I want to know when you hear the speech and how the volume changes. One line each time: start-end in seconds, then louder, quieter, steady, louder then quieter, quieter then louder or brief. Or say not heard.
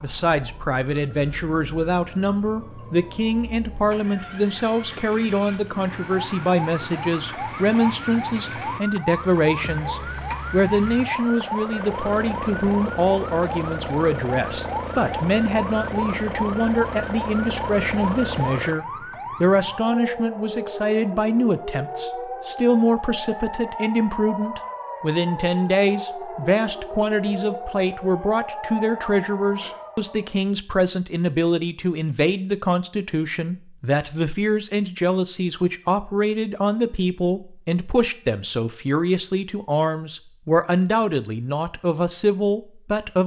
0.0-43.2 steady.